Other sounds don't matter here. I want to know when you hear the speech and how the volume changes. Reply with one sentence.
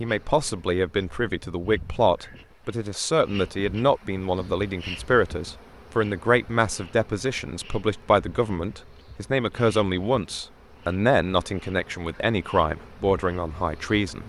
The speech can be heard from 0.0 to 14.2 s, at a steady volume.